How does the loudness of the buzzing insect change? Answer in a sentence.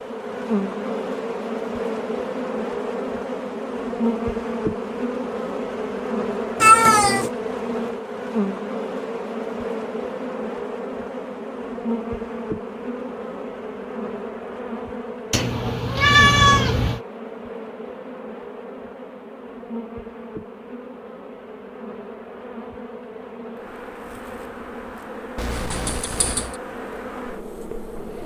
The loudness of the buzzing insect goes down.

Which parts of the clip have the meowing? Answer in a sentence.
You can hear the meowing from 6.6 to 7.3 s, from 15.3 to 17.0 s and from 25.4 to 26.6 s.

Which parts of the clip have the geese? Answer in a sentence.
You can't hear the geese here.